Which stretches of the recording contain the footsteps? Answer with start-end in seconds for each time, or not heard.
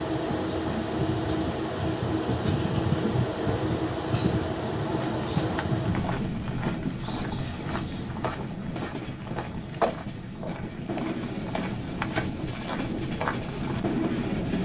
5.0-13.8.